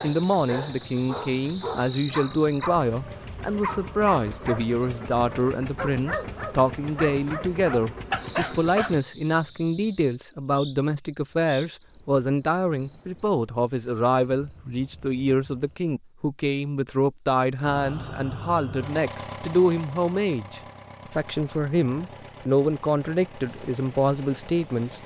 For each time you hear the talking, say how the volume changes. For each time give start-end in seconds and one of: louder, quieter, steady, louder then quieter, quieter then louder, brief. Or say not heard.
0.0-25.0 steady.